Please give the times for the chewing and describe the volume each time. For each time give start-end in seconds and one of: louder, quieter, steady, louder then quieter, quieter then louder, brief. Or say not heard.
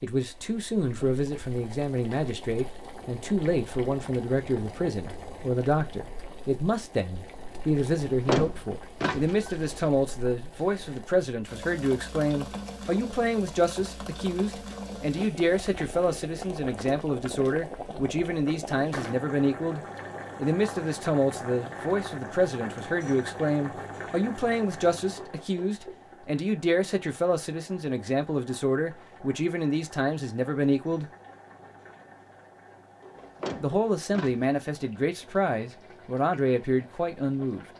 not heard.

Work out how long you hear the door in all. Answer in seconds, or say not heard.
3 s.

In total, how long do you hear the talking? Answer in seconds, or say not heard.
35 s.